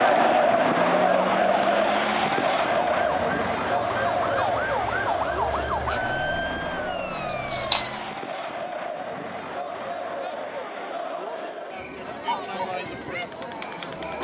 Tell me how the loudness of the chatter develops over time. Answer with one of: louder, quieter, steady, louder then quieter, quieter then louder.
quieter.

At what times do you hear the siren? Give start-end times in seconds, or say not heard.
0.1-8.1.